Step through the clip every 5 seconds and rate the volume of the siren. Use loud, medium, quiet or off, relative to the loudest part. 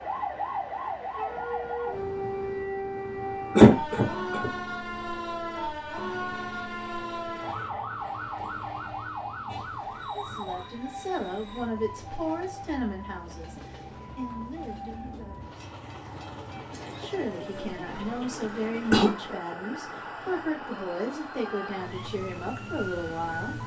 loud, loud, medium, medium, medium.